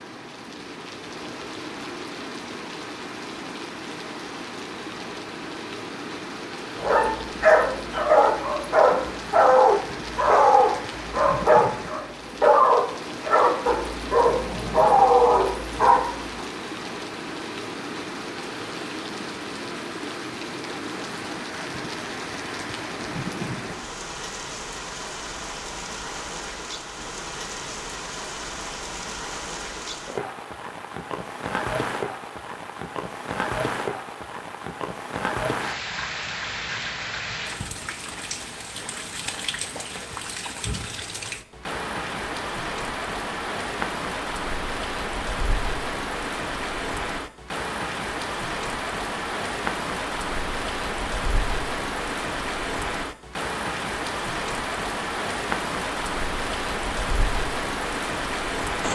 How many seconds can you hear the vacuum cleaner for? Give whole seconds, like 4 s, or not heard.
not heard.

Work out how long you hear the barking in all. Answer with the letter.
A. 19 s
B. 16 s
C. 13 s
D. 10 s
D.